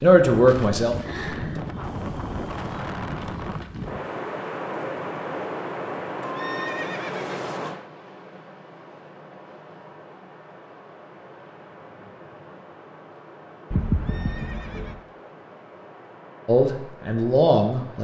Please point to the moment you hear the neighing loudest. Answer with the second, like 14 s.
14 s.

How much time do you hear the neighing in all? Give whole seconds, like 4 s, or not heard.
4 s.